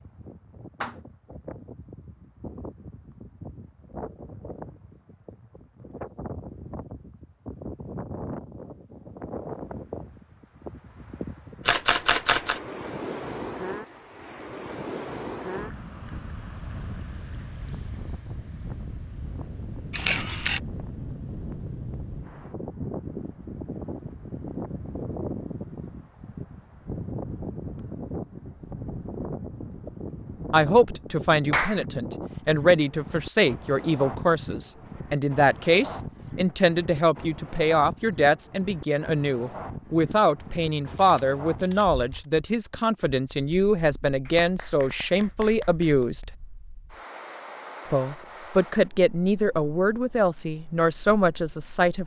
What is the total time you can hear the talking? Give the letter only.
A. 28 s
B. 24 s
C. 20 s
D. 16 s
C.